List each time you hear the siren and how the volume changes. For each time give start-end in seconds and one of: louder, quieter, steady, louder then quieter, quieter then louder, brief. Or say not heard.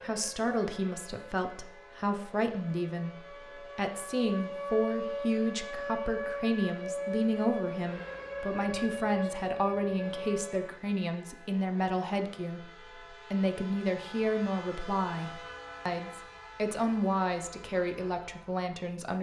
0.0-10.8 louder.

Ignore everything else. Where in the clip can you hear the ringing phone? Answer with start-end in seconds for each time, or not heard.
not heard.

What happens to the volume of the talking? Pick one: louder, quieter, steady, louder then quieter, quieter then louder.
steady.